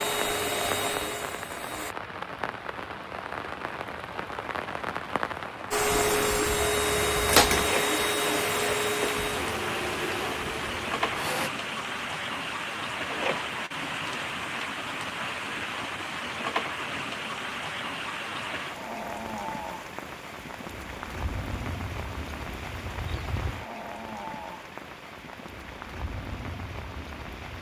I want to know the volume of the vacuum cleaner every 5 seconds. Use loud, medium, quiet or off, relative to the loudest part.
medium, loud, medium, off, off, off.